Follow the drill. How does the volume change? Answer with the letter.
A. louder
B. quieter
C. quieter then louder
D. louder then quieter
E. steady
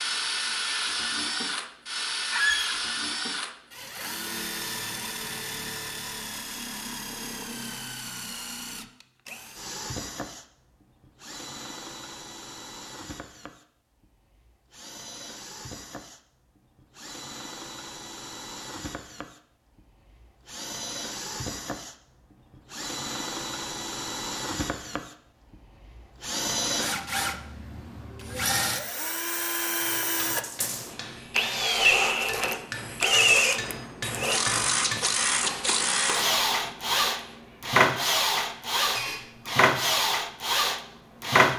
C.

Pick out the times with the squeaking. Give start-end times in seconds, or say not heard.
2.3-2.8, 39.0-39.6.